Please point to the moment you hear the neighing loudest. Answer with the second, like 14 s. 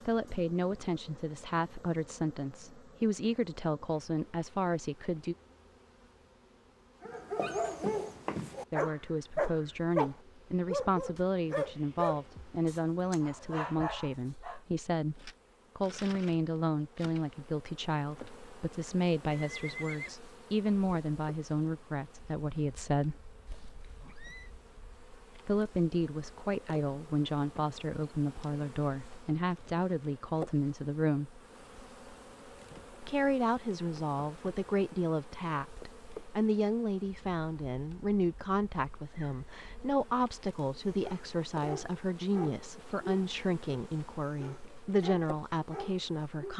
20 s.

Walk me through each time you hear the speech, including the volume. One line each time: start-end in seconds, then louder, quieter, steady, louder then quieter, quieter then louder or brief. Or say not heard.
0.1-5.3 steady
8.7-23.2 steady
25.4-31.4 steady
33.0-46.5 steady.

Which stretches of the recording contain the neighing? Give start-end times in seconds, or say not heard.
19.3-20.1, 23.4-24.5.